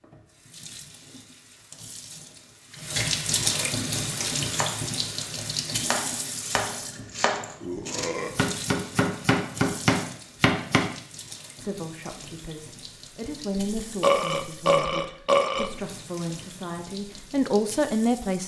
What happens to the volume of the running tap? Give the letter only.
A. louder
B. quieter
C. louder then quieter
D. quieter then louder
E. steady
B.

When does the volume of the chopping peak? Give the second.
10 s.